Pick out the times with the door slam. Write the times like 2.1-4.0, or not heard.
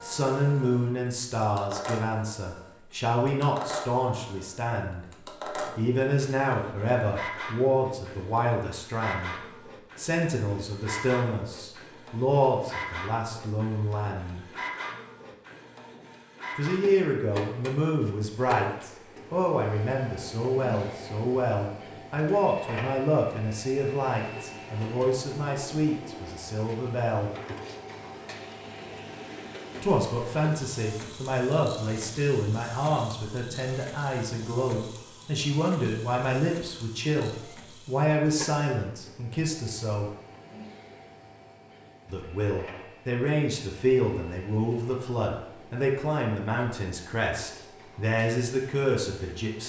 not heard.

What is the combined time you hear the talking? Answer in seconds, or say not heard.
43 s.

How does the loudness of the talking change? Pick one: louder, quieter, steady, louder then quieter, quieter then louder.
steady.